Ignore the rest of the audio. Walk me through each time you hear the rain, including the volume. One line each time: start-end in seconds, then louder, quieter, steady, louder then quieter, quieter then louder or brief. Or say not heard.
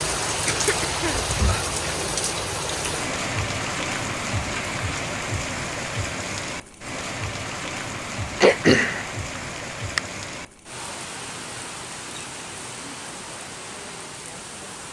0.0-14.8 quieter.